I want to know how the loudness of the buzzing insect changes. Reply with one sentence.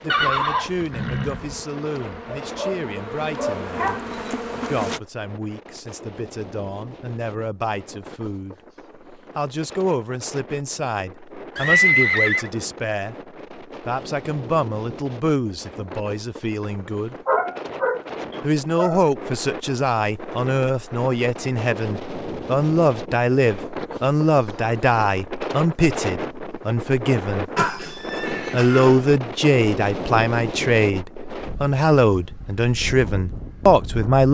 The volume of the buzzing insect goes up.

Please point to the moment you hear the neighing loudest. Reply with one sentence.
The volume of the neighing peaks at 12 seconds.